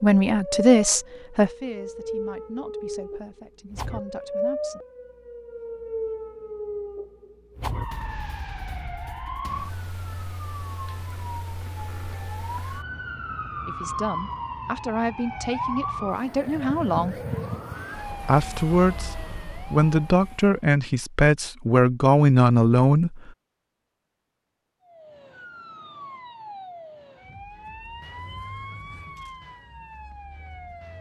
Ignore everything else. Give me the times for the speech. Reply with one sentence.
The speech can be heard from 0.0 to 4.8 s, from 13.7 to 17.1 s and from 18.2 to 23.1 s.